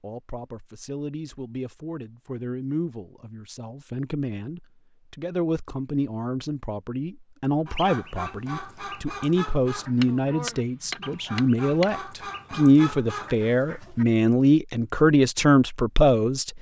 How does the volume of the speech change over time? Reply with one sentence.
The loudness of the speech goes up.